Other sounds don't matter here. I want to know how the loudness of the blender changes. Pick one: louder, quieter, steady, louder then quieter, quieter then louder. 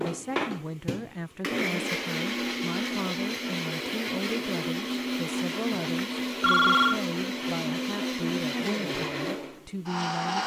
steady.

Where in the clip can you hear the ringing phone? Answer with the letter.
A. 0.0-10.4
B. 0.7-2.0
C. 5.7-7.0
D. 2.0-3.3
C.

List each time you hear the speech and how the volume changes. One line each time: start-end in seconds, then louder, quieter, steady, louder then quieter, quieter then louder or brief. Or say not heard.
0.0-10.4 steady.